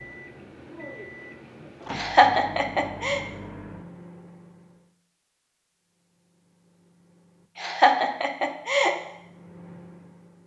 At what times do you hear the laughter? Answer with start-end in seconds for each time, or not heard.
1.9-3.2, 7.5-8.9.